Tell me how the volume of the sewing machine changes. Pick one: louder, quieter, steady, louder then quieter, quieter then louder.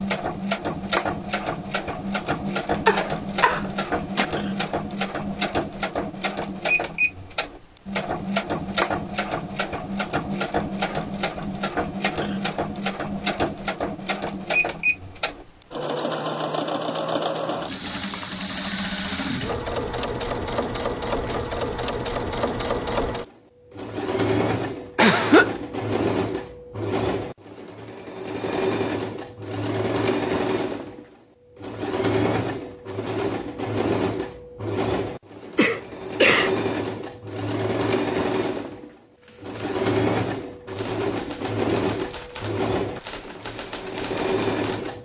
steady.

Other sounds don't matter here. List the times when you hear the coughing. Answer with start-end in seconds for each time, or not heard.
2.2-4.2, 24.9-25.5, 35.5-36.5.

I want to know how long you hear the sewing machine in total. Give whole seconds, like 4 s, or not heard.
45 s.